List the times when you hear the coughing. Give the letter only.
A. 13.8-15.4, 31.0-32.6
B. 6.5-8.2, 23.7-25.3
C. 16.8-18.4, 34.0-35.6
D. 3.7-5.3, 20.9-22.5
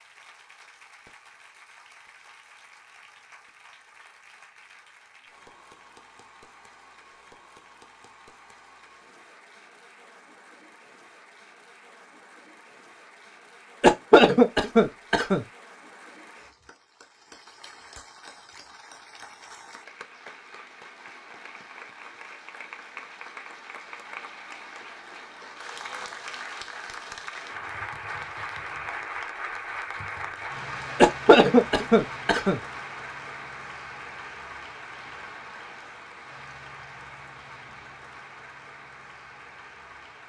A.